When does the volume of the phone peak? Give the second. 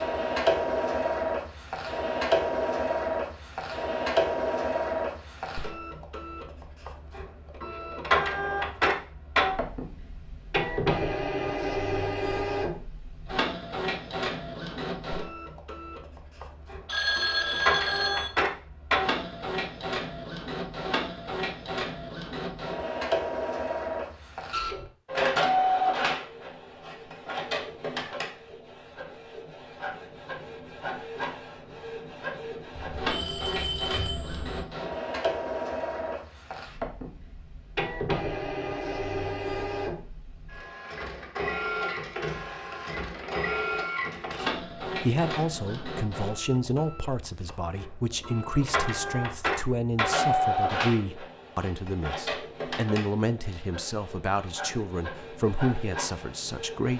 17 s.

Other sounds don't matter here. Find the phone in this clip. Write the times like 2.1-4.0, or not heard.
16.9-18.3, 32.7-34.6.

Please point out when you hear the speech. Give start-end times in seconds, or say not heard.
44.4-56.9.